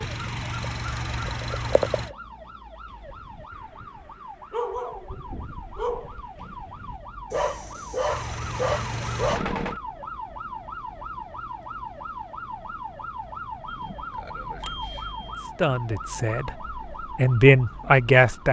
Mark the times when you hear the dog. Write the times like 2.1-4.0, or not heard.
2.9-9.4.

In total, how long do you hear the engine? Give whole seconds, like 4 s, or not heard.
4 s.